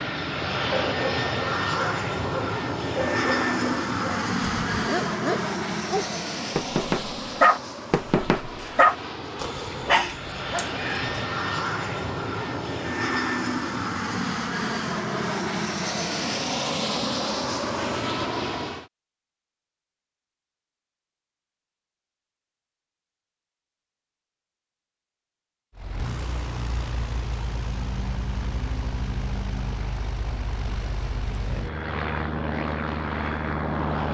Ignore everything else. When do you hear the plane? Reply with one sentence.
The plane can be heard from 0.0 to 18.9 s and from 25.8 to 34.0 s.